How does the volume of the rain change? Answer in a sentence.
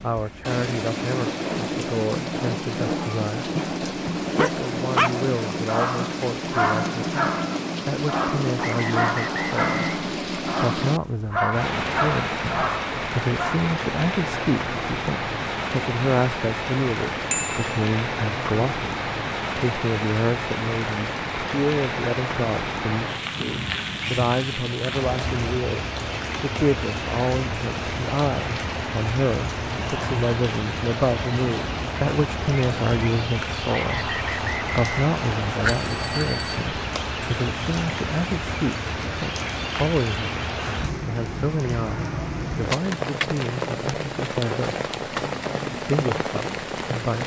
The loudness of the rain stays about the same.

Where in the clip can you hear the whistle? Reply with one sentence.
You can hear the whistle from 8.6 to 10.1 s and from 33.6 to 35.5 s.